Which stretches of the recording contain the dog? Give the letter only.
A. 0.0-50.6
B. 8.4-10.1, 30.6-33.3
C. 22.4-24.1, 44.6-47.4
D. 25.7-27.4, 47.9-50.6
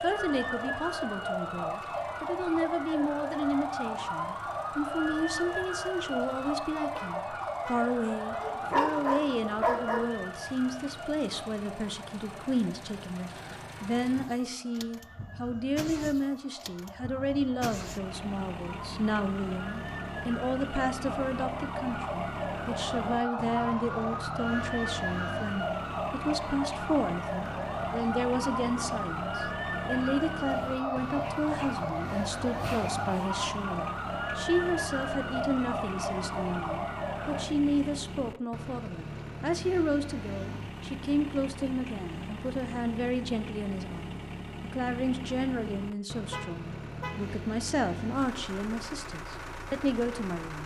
B.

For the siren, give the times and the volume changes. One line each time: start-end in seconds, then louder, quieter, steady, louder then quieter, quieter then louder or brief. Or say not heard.
0.0-37.5 quieter then louder.